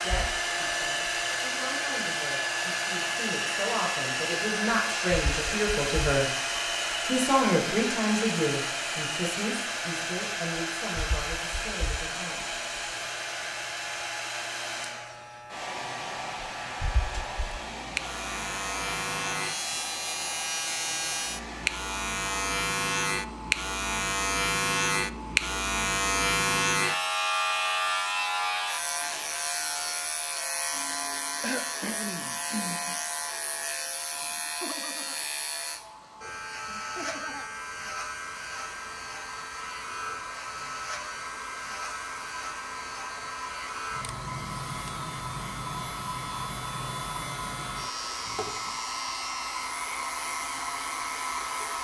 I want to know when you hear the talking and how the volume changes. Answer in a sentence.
The talking can be heard from 0.0 to 6.3 s, getting louder; and from 7.0 to 12.5 s, getting quieter.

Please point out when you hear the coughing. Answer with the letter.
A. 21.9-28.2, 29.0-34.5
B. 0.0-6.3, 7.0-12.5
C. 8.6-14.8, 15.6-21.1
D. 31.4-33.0
D.